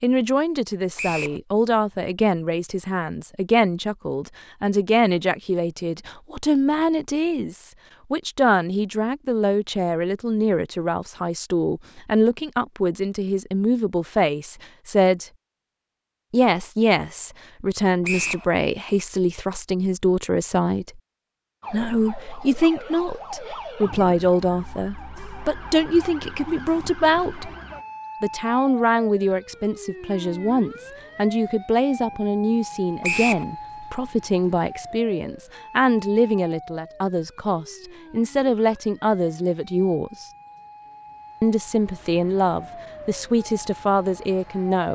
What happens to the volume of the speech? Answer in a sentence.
The volume of the speech stays about the same.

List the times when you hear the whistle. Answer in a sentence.
The whistle can be heard from 0.9 to 1.4 s, from 18.0 to 18.4 s and from 33.0 to 33.5 s.